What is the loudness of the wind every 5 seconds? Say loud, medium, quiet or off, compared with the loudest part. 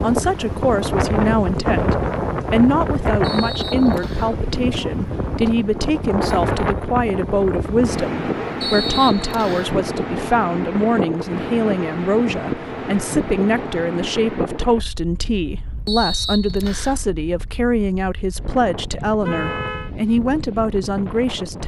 loud, loud, loud, quiet, medium.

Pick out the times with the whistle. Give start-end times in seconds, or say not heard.
3.2-4.3, 8.6-9.8, 15.8-17.0.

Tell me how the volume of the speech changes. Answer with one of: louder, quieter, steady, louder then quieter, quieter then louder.
steady.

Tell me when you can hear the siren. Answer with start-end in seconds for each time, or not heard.
not heard.